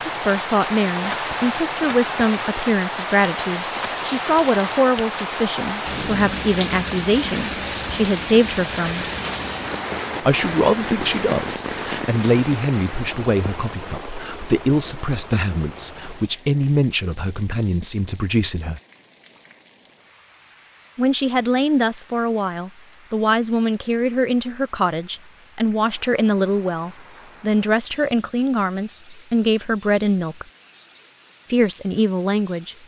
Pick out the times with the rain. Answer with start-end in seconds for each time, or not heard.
0.0-32.8.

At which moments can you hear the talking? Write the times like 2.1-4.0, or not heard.
0.1-9.1, 10.2-18.8, 20.9-30.4, 31.5-32.8.